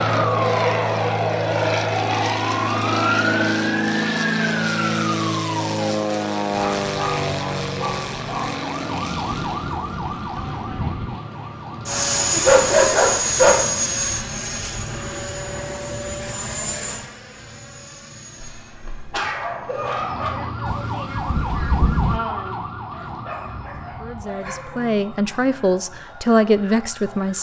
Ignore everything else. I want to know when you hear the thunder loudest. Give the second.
22 s.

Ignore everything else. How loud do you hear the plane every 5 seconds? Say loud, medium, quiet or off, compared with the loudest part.
loud, loud, loud, medium, quiet, quiet.